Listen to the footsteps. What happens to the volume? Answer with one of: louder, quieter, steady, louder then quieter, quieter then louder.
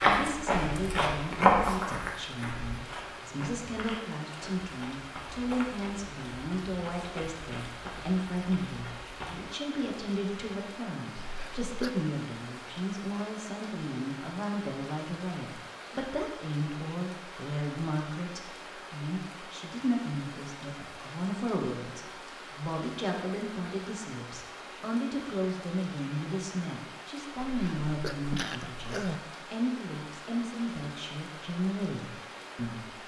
quieter.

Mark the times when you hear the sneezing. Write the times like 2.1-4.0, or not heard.
11.2-12.0, 27.4-29.2.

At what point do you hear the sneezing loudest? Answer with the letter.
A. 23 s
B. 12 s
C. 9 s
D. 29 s
D.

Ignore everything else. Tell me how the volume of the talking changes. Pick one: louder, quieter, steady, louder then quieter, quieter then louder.
steady.